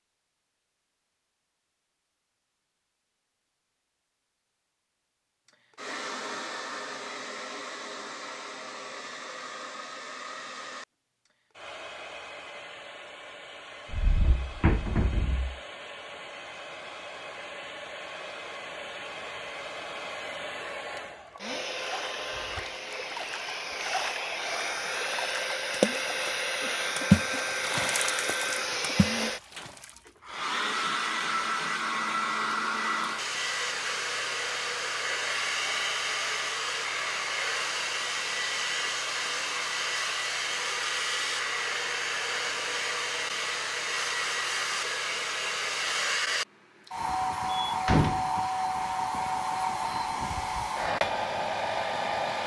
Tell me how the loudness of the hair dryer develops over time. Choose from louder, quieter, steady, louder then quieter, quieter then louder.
louder.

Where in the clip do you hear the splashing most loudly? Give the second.
27 s.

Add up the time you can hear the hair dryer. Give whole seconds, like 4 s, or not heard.
47 s.